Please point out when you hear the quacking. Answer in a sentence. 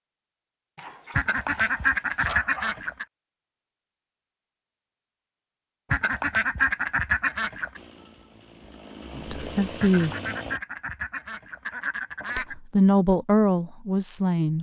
The quacking can be heard from 1.1 to 3.0 s, from 5.9 to 7.8 s and from 9.8 to 12.6 s.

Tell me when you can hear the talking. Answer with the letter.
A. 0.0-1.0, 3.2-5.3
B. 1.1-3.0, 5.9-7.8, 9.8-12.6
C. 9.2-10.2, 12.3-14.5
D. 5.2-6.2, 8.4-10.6
C.